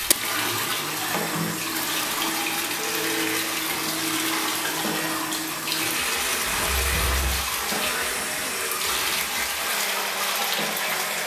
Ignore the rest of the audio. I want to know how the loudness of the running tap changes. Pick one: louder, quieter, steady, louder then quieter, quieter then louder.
steady.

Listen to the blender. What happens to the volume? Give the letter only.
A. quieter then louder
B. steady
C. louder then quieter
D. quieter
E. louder
B.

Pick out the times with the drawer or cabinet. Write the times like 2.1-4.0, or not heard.
not heard.